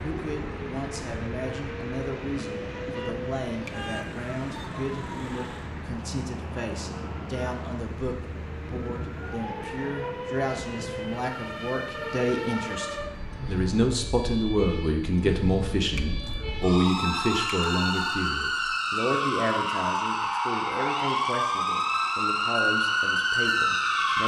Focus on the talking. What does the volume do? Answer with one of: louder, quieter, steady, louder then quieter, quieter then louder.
louder then quieter.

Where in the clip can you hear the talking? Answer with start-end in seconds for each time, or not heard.
0.0-24.2.